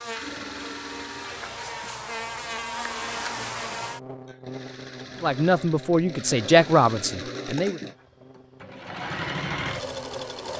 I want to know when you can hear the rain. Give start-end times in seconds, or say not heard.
not heard.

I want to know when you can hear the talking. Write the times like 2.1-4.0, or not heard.
5.2-7.8.